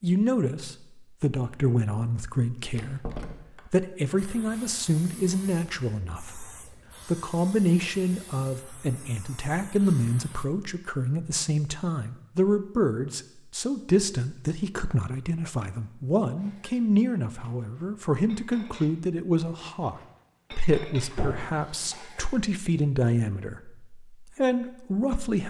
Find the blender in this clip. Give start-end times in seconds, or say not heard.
not heard.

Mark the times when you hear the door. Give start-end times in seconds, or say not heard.
2.8-3.6, 21.1-21.6.